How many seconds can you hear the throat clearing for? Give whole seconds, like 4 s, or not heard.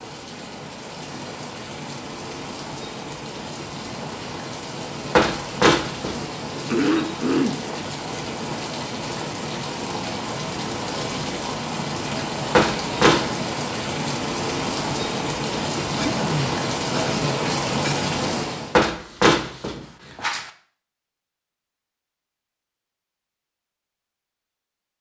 3 s.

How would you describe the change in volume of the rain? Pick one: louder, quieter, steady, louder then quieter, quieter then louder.
louder.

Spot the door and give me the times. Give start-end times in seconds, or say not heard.
5.2-6.2, 12.6-13.3, 18.8-20.5.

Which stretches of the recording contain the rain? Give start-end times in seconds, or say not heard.
0.0-18.8.